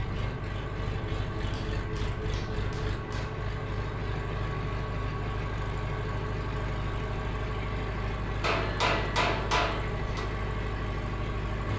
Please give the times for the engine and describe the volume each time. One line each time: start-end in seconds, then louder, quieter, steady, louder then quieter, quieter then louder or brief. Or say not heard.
0.0-11.7 steady.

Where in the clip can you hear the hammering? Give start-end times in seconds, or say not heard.
1.4-3.4, 8.4-10.2.